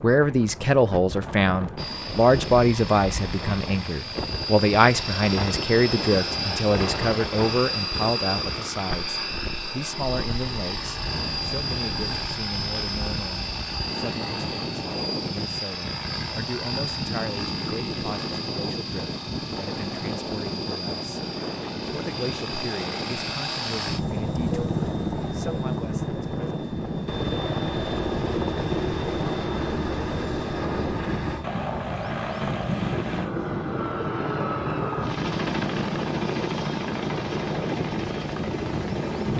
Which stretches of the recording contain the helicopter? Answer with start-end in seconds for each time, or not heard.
1.8-39.3.